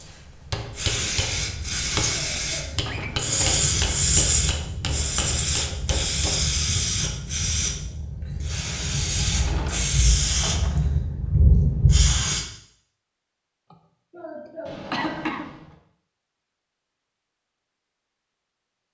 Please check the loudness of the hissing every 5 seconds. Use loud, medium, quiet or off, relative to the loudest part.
loud, loud, loud, off.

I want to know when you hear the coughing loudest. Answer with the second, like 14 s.
15 s.